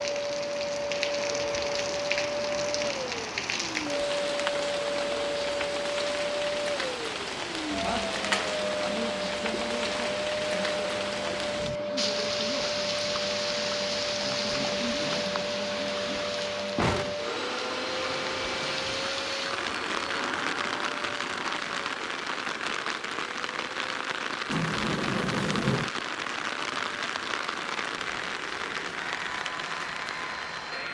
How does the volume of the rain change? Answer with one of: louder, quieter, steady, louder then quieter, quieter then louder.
steady.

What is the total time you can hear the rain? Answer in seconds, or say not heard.
31 s.